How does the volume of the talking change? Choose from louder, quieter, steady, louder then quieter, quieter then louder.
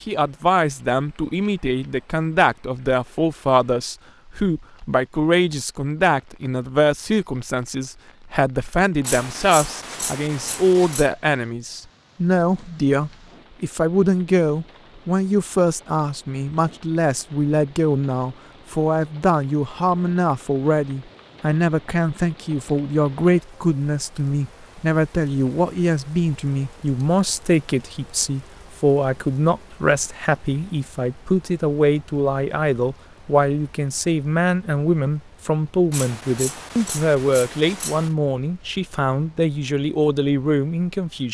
steady.